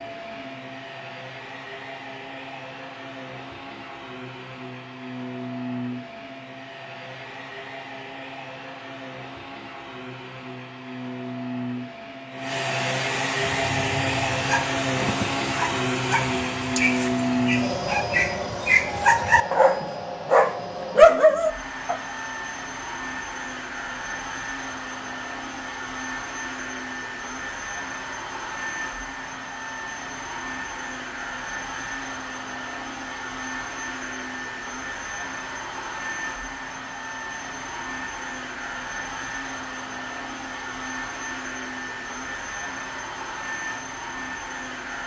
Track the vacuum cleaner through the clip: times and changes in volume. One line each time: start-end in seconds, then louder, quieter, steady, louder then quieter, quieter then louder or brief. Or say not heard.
0.0-45.0 louder then quieter.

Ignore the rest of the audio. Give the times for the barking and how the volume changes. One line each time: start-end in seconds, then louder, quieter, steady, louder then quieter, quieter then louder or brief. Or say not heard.
13.4-22.0 louder.